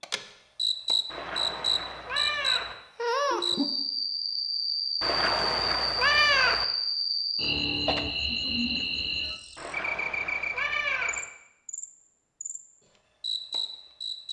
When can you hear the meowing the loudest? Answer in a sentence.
The loudest moment of the meowing is at 6 seconds.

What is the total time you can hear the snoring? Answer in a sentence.
You can't hear the snoring here.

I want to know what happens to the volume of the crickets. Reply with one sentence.
The volume of the crickets goes down.